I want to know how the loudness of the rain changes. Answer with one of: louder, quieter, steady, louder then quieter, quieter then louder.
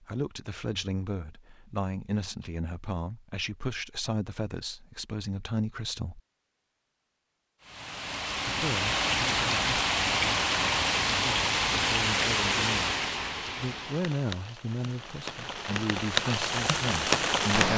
quieter then louder.